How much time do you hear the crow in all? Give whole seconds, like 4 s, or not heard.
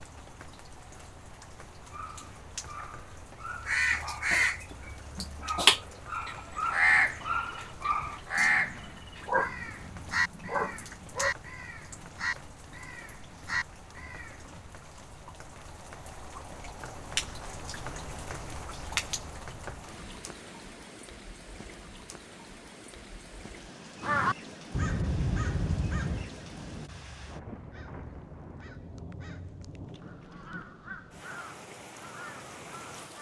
20 s.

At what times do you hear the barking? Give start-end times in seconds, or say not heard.
1.9-11.3.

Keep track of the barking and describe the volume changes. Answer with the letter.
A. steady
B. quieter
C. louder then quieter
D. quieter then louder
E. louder
E.